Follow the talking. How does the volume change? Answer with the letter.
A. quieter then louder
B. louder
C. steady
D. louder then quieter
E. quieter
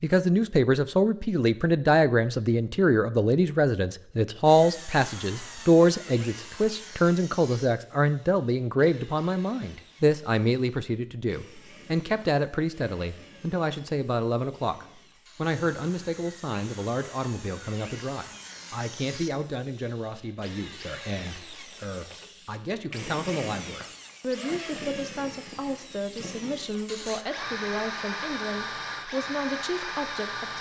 E.